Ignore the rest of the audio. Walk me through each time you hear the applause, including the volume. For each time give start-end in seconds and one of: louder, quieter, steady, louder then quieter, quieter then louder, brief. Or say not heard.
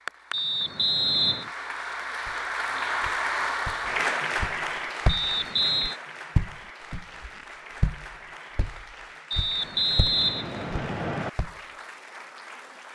0.0-12.8 louder then quieter.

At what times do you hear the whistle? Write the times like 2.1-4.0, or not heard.
0.3-1.5, 5.0-6.0, 9.3-11.3.